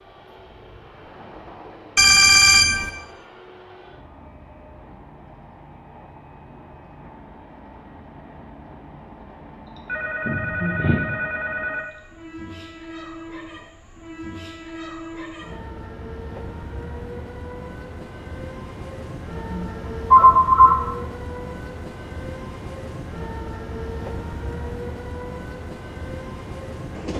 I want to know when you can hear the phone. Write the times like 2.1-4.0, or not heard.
1.9-2.9, 9.8-11.8, 19.5-20.8.